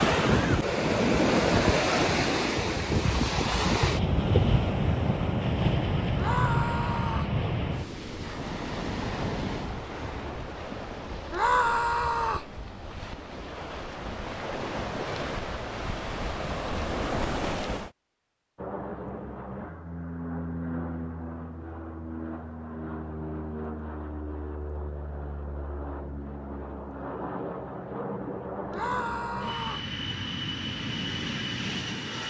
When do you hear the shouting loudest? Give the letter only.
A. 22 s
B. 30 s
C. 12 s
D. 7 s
C.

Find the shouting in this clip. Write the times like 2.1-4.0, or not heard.
6.2-7.3, 11.3-12.5, 28.7-29.9.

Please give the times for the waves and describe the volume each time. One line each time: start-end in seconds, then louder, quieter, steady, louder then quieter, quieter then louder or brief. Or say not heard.
0.0-17.9 quieter then louder.